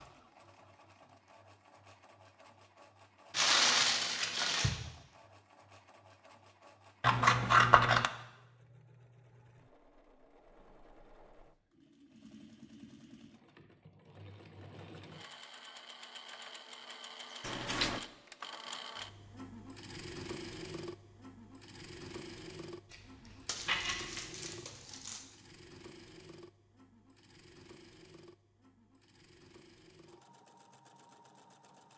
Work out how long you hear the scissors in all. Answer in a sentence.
You can hear the scissors for 3 seconds altogether.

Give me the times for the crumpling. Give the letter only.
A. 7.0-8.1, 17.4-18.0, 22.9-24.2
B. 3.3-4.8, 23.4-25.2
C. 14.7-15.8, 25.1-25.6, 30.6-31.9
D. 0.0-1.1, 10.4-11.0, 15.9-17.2
B.